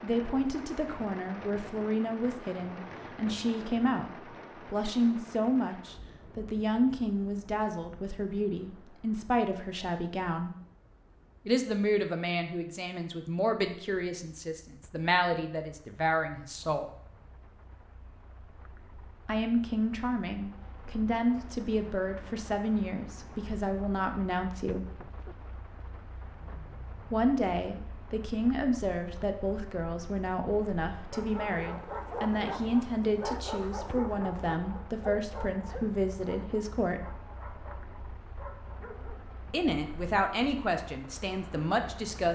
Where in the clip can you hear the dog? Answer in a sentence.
The dog can be heard from 30.9 to 39.4 s.